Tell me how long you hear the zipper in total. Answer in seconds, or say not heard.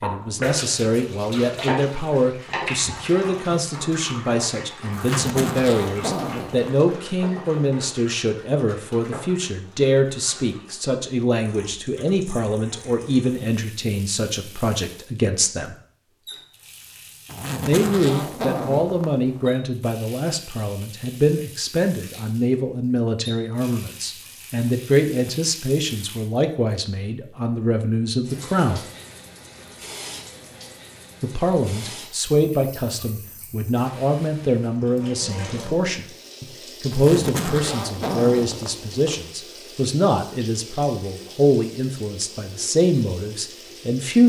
6 s.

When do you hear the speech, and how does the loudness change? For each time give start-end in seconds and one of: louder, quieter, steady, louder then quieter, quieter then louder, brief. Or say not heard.
0.0-15.8 steady
17.6-28.9 steady
31.2-44.2 steady.